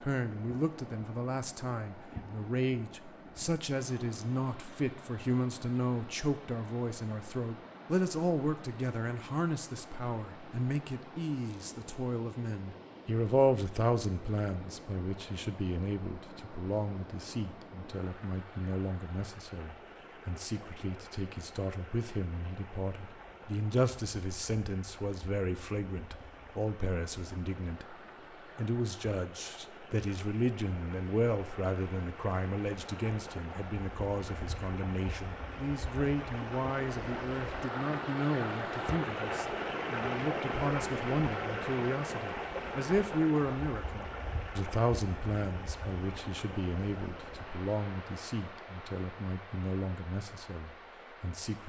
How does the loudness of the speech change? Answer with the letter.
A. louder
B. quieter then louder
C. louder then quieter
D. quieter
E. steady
E.